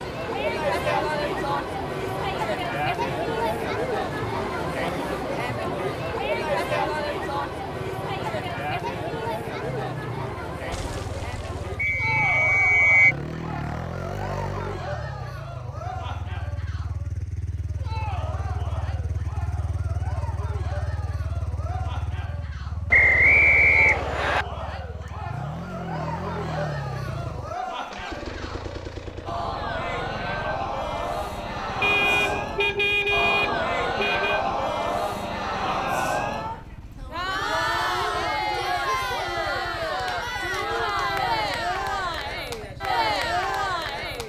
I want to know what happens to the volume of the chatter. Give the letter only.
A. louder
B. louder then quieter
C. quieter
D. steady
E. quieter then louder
E.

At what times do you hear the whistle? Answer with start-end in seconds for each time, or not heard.
11.8-13.2, 22.9-24.4.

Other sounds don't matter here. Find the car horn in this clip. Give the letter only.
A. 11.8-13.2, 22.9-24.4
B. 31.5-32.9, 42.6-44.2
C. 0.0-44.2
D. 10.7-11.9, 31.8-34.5
D.